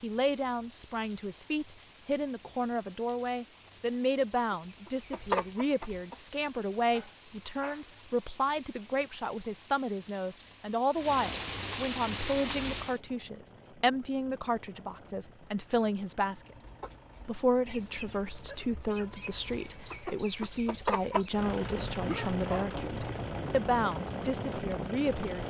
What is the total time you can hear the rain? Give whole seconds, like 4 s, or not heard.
13 s.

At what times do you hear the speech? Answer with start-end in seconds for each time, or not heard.
0.0-16.6, 17.2-25.4.